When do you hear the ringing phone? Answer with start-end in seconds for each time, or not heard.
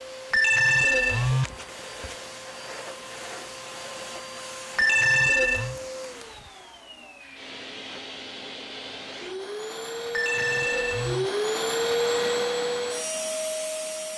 0.3-2.1, 4.8-5.8, 10.1-11.3.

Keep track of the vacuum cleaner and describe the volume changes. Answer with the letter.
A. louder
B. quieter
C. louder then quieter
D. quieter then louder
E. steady
A.